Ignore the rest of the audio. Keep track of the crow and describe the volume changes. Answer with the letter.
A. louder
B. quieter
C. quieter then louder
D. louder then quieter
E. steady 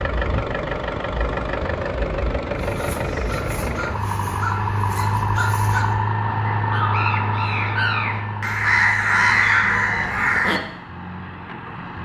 A.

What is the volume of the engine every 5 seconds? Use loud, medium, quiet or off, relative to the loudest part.
loud, loud, medium.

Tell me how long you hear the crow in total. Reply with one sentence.
The crow can be heard for 8 seconds in total.